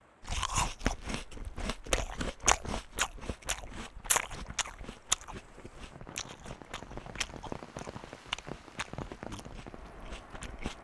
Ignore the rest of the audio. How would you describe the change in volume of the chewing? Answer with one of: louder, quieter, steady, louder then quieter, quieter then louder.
quieter.